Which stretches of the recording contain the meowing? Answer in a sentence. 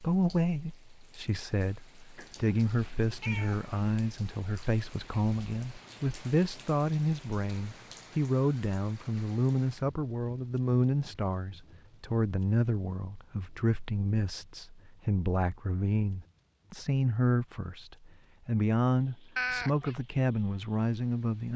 You can hear the meowing from 2.1 to 3.8 s and from 19.4 to 19.9 s.